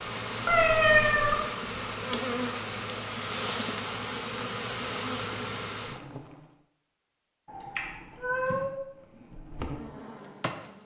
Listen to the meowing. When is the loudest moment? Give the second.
1 s.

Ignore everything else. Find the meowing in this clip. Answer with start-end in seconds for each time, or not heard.
0.5-1.4, 7.5-8.7.